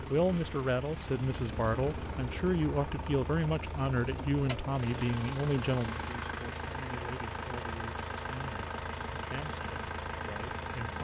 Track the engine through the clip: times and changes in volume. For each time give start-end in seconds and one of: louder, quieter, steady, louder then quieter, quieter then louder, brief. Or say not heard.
0.0-10.9 steady.